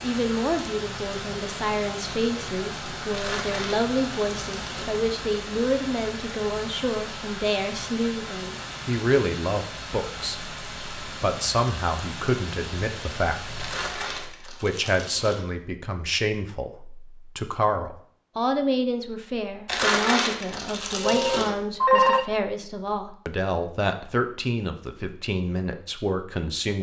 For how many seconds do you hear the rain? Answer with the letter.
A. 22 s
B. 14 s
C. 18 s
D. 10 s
B.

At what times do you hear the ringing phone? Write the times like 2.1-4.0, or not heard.
21.1-22.2.